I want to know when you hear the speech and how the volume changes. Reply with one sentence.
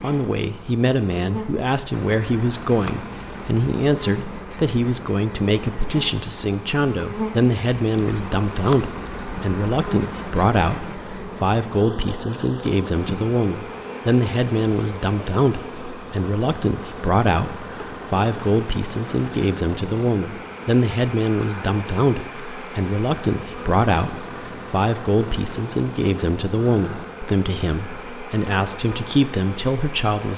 You can hear the speech from 0.0 to 30.3 s, at a steady volume.